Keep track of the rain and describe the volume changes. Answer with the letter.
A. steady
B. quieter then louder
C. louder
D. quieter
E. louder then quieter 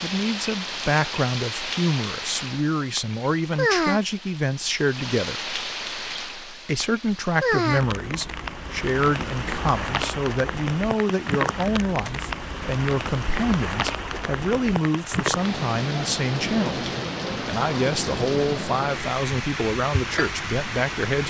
A.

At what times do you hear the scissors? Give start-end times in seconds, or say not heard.
not heard.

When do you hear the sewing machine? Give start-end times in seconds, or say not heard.
not heard.